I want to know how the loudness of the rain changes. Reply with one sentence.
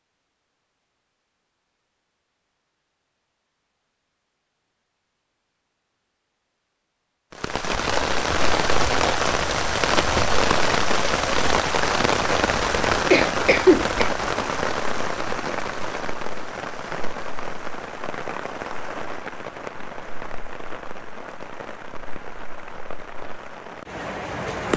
The loudness of the rain goes down.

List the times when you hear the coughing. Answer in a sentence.
You can hear the coughing from 13.1 to 14.0 s.